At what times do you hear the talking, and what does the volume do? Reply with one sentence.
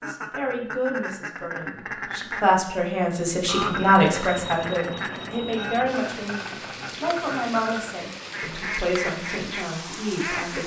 You can hear the talking from 0.0 to 10.6 s, getting louder then quieter.